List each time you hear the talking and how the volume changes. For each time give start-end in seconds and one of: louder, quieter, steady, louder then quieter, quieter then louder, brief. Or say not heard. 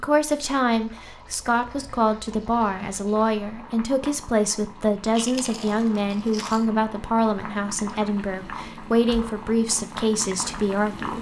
0.0-11.1 steady.